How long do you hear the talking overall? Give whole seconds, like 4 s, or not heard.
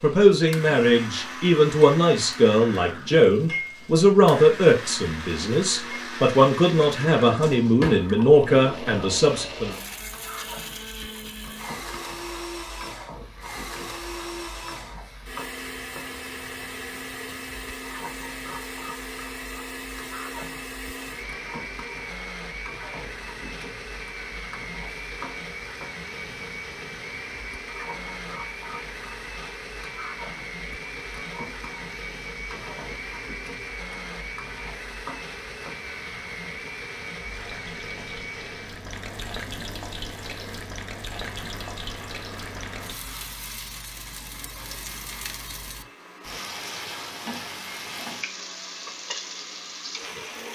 10 s.